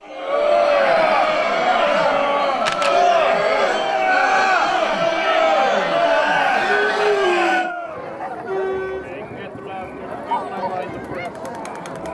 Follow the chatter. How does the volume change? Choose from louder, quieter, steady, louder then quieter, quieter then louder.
quieter.